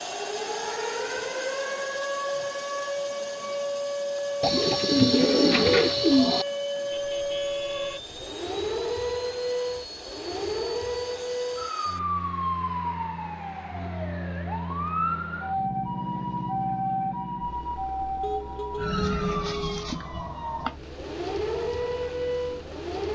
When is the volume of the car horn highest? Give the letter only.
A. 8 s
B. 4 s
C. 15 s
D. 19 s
D.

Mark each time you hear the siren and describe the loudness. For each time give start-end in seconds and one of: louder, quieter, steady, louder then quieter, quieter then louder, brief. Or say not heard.
0.0-23.1 steady.